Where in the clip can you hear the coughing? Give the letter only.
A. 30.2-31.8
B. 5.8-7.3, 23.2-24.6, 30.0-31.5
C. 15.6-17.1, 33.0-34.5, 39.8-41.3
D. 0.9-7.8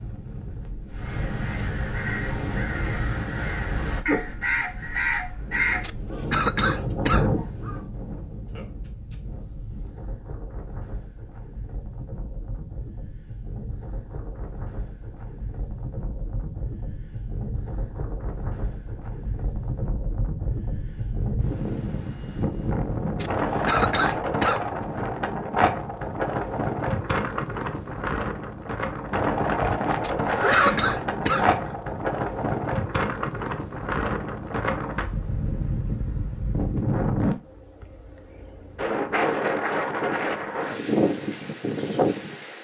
B.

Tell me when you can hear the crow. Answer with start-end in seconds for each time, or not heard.
0.9-7.8.